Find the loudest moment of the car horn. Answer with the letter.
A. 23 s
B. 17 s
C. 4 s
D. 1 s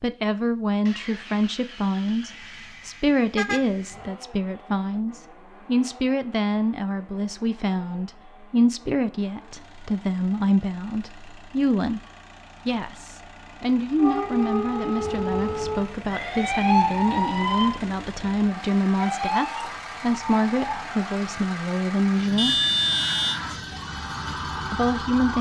A.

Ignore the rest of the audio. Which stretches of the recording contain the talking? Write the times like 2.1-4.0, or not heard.
0.0-12.0, 12.7-22.6, 24.7-25.3.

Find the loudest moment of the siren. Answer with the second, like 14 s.
17 s.